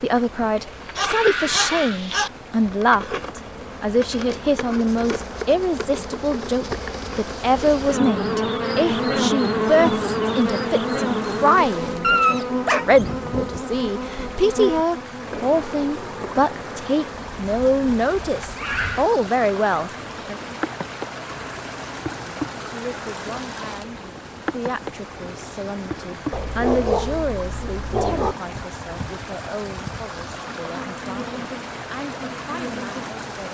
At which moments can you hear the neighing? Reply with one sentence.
The neighing can be heard from 0.7 to 2.0 s and from 18.4 to 19.1 s.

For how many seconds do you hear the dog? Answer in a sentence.
You can hear the dog for 5 seconds altogether.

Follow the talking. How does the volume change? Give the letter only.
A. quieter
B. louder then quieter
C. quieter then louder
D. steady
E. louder
A.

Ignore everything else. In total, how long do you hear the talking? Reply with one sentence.
You can hear the talking for 31 seconds altogether.